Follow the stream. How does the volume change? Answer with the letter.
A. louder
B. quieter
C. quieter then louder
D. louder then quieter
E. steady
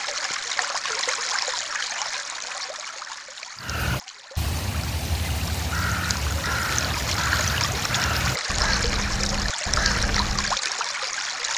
C.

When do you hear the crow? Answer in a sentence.
The crow can be heard from 3.5 to 10.6 s.